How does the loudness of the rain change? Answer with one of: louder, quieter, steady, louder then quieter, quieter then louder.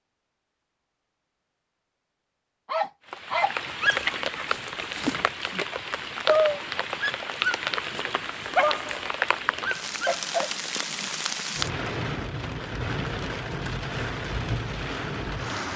steady.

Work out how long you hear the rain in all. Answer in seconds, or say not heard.
13 s.